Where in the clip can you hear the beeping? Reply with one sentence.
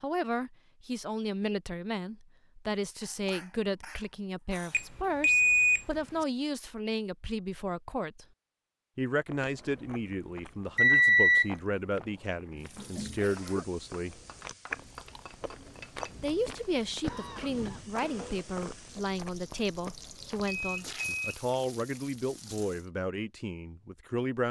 You can hear the beeping from 4.7 to 6.2 s, from 10.8 to 11.5 s and from 20.6 to 21.4 s.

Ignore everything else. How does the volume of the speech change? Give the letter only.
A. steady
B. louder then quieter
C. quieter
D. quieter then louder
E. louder
A.